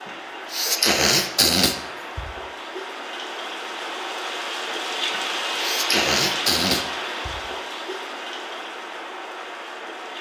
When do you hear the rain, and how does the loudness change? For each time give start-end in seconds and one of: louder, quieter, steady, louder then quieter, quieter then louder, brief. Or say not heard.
0.0-10.1 louder then quieter.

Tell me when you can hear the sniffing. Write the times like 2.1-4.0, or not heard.
0.5-2.3, 5.5-7.4.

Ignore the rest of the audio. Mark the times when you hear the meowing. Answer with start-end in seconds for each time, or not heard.
not heard.